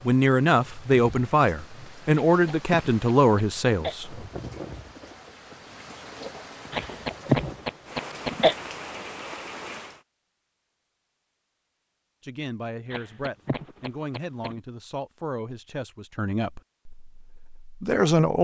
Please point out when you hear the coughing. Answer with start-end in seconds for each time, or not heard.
2.2-4.0, 6.7-8.6, 12.9-14.6.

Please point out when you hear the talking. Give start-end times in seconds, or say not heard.
0.1-4.2, 12.2-18.3.